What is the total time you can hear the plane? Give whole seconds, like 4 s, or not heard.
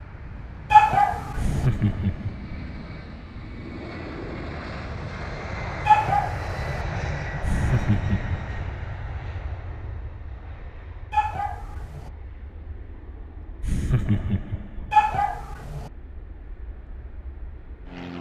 18 s.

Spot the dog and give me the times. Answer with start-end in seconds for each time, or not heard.
0.7-1.6, 5.8-6.8, 11.1-12.1, 14.9-15.9.